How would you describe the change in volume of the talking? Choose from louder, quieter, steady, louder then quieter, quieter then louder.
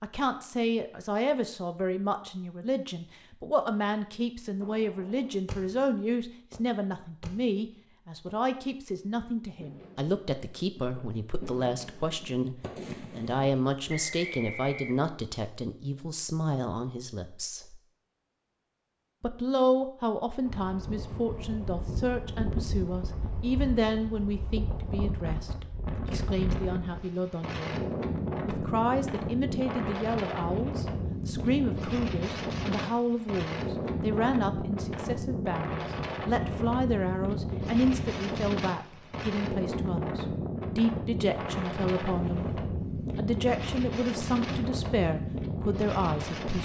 steady.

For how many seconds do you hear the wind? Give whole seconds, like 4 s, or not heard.
26 s.